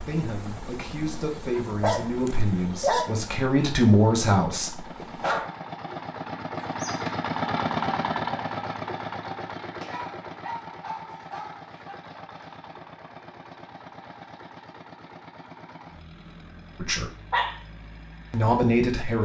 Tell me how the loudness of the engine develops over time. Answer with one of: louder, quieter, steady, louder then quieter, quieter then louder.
louder then quieter.